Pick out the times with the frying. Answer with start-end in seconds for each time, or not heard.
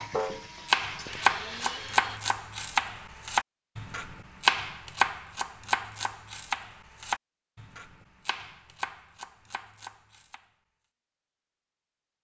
0.0-1.8.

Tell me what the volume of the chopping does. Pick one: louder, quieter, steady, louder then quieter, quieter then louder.
quieter.